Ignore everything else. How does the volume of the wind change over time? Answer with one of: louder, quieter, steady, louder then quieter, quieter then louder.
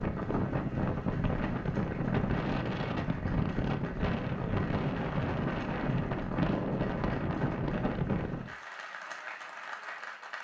steady.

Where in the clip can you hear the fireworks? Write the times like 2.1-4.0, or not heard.
not heard.